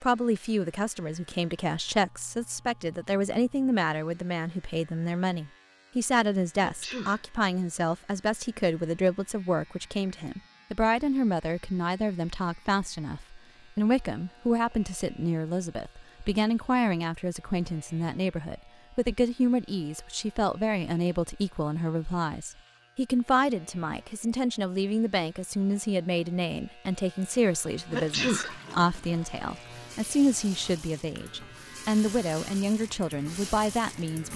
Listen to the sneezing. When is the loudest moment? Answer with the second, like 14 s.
28 s.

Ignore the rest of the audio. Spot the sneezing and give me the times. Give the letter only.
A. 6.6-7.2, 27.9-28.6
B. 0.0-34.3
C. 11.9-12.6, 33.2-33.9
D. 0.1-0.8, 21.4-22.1
A.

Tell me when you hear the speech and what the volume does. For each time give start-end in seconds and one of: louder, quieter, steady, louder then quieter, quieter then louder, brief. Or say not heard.
0.0-34.3 steady.